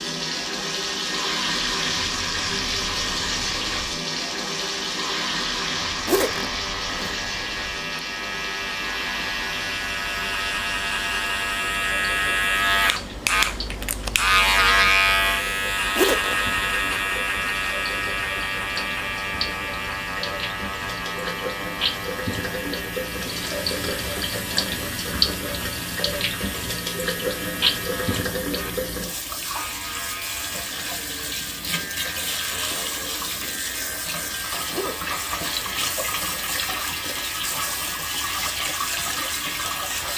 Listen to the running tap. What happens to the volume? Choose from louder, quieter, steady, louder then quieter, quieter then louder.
quieter then louder.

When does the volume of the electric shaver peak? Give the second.
15 s.